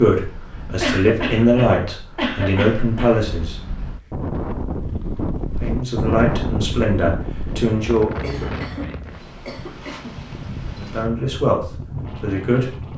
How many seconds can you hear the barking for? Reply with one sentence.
You can't hear the barking here.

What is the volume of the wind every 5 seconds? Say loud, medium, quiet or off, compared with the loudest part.
medium, loud, medium.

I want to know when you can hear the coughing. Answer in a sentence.
The coughing can be heard from 0.8 to 3.1 s and from 8.2 to 10.2 s.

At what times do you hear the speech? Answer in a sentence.
You can hear the speech from 0.0 to 3.5 s, from 5.6 to 8.3 s and from 10.8 to 12.9 s.